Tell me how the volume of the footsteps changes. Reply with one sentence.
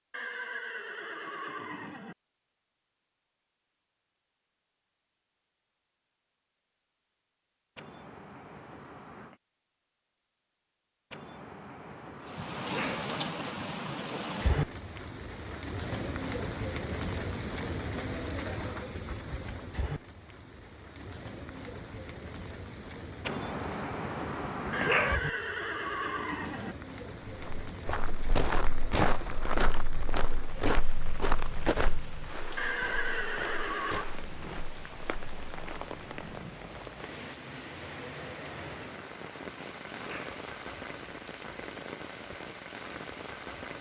The loudness of the footsteps goes down.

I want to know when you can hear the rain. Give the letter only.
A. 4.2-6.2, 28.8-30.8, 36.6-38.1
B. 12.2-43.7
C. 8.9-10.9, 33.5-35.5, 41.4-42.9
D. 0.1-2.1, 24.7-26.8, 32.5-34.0
B.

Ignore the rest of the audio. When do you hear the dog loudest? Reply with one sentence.
The loudest moment of the dog is at 25 seconds.